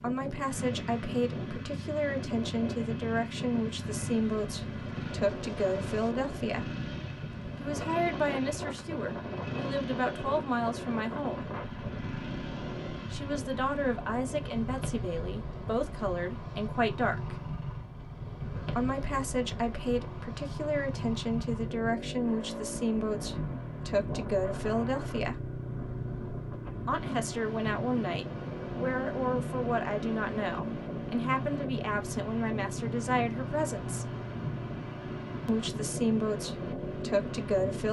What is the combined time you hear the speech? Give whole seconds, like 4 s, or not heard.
31 s.